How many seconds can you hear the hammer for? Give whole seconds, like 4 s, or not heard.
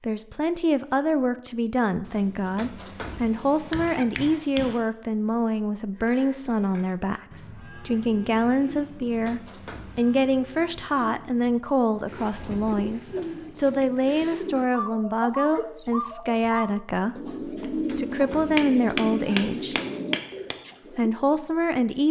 5 s.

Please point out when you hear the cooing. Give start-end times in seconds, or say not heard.
12.1-21.1.